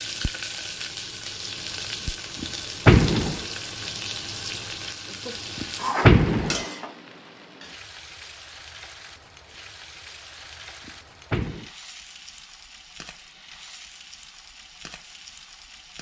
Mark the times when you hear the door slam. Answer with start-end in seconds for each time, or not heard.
2.4-3.5, 5.6-6.7, 10.8-11.7.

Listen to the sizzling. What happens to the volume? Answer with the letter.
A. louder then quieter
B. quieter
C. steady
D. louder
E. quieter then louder
B.